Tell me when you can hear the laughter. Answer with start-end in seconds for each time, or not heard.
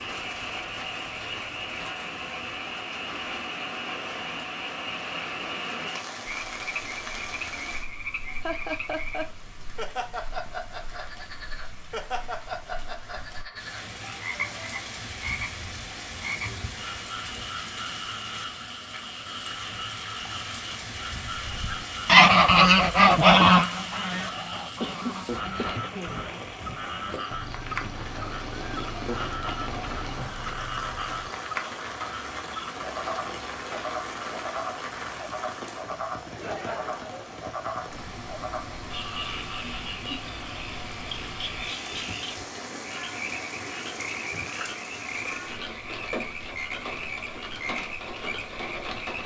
8.4-9.2, 24.8-26.3, 36.2-37.5.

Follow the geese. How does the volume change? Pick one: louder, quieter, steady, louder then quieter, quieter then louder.
quieter.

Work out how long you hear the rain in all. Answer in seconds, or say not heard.
49 s.